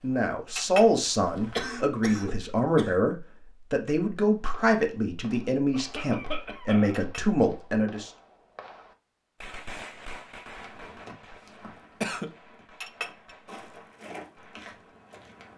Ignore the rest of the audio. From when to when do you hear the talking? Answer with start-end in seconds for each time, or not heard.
0.0-8.1.